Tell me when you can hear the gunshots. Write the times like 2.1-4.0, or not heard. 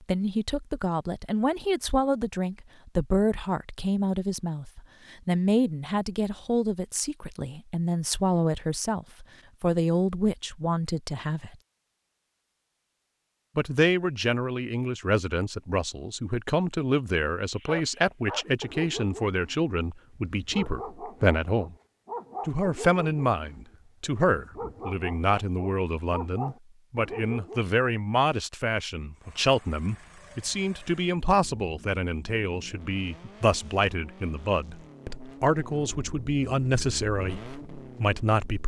not heard.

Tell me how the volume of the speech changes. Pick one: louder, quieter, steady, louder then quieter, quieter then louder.
steady.